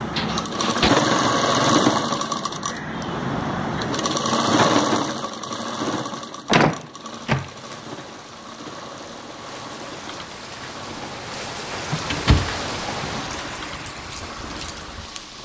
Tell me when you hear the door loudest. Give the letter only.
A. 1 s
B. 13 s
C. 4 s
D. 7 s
D.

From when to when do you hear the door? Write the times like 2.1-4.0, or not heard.
0.1-0.9, 6.5-7.8, 11.7-13.3.